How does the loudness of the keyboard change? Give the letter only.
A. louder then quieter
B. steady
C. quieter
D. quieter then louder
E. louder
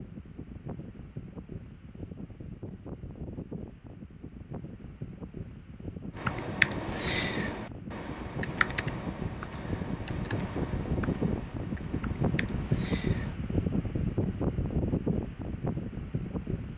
C.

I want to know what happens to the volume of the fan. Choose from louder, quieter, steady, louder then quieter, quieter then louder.
louder.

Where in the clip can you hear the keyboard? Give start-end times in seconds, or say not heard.
6.2-13.4.